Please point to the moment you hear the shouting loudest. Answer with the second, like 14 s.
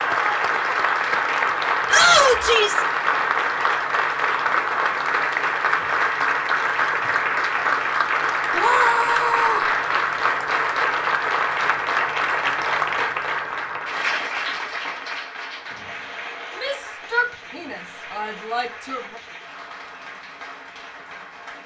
2 s.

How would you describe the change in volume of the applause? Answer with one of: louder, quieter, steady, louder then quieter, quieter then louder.
quieter.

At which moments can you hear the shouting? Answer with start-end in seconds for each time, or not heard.
1.9-2.9, 8.5-9.7, 16.6-19.2.